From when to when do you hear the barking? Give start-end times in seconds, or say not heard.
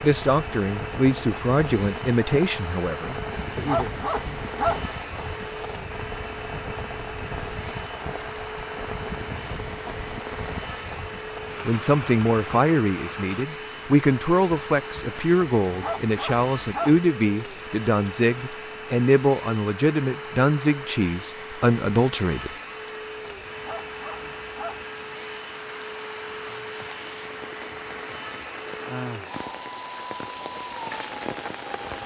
3.5-4.8, 15.6-17.0, 23.2-24.9.